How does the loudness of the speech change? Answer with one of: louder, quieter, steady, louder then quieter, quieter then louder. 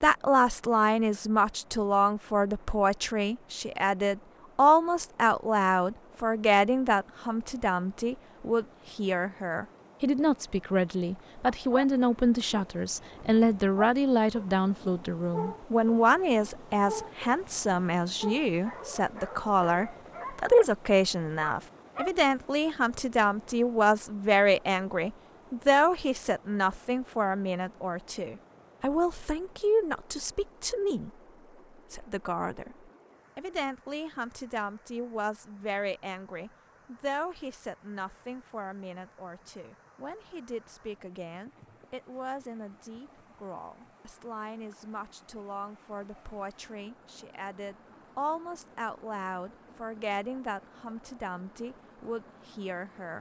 quieter.